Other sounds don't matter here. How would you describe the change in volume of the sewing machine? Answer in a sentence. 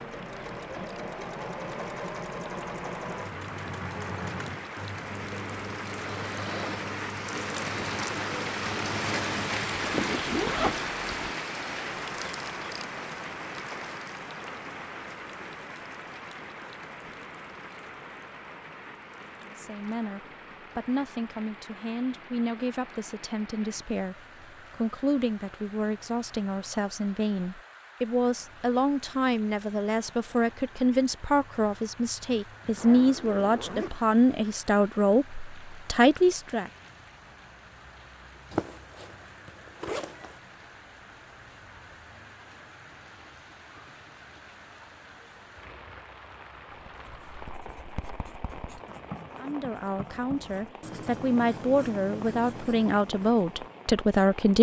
The loudness of the sewing machine stays about the same.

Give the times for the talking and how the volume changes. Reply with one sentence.
The talking can be heard from 19.4 to 36.7 s, getting louder; and from 49.4 to 54.5 s, getting louder.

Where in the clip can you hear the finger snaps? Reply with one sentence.
The finger snaps can't be heard in this clip.